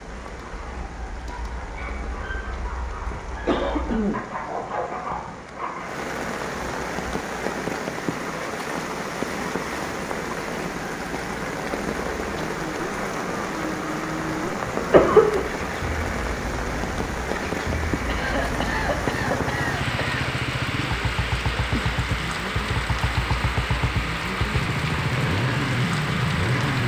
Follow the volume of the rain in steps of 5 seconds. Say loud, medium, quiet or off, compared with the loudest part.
medium, loud, loud, loud, loud, loud.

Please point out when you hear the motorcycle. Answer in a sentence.
The motorcycle can be heard from 12.3 to 26.8 s.